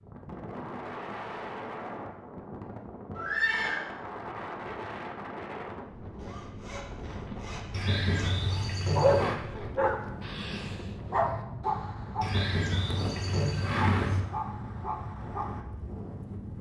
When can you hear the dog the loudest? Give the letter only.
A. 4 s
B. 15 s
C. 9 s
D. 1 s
C.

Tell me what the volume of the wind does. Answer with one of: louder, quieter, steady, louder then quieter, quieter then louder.
steady.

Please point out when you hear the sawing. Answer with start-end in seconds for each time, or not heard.
6.2-8.8.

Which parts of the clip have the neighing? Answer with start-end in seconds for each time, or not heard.
3.1-3.9, 7.7-9.4, 12.2-14.2.